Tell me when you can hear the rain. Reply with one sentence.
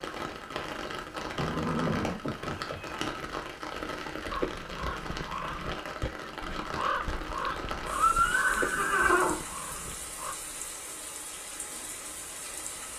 You can hear the rain from 0.0 to 12.9 s.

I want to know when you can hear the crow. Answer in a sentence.
The crow can be heard from 4.3 to 10.3 s.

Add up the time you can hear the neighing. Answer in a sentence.
The neighing can be heard for 3 seconds in total.